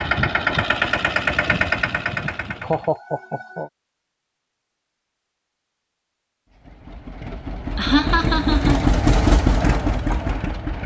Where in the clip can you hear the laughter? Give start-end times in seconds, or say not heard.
2.1-3.7, 7.8-8.9.